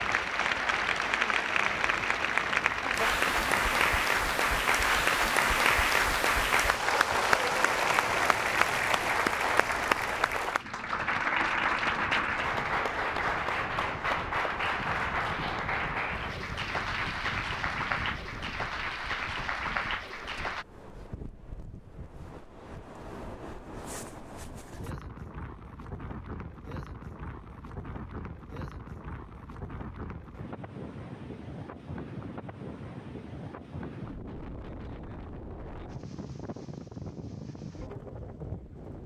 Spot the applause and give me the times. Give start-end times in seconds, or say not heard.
0.0-20.6.